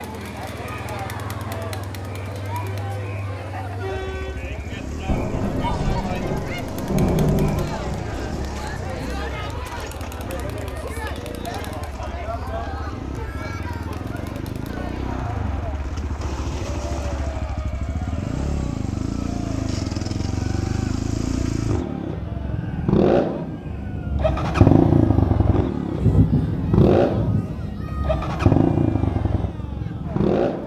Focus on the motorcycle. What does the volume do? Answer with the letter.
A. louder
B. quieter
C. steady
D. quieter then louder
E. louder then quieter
A.